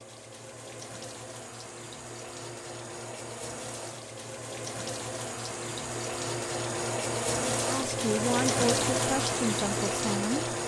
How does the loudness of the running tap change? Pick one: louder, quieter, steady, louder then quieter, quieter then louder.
louder.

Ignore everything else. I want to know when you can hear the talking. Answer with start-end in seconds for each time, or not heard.
7.6-10.4.